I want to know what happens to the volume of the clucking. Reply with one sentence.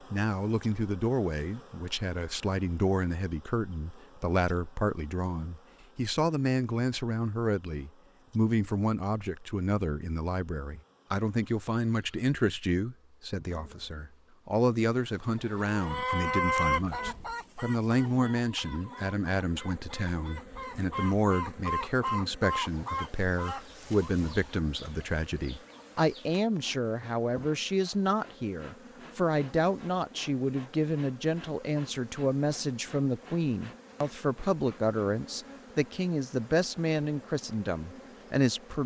The volume of the clucking goes down, then up.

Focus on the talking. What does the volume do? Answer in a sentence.
The volume of the talking stays about the same.